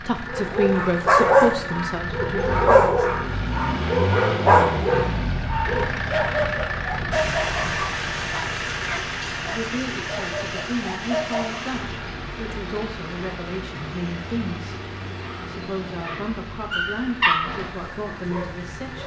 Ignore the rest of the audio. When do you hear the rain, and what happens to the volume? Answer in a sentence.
You can hear the rain from 7.1 to 19.0 s, getting quieter.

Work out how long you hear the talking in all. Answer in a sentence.
The talking can be heard for 12 seconds in total.